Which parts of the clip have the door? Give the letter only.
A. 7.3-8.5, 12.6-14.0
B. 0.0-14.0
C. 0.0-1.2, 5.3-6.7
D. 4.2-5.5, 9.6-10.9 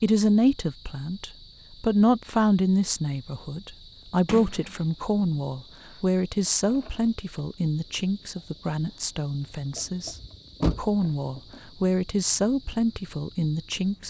D.